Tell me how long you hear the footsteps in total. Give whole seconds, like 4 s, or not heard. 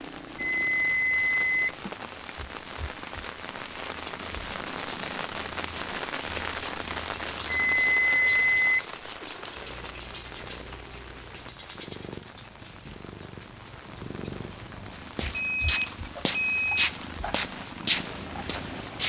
4 s.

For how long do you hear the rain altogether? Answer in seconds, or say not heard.
19 s.